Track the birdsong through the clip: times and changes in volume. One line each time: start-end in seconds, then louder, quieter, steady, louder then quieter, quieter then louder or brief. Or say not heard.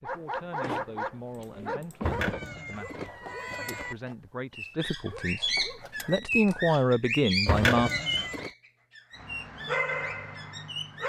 4.5-11.0 quieter.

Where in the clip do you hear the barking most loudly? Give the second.
10 s.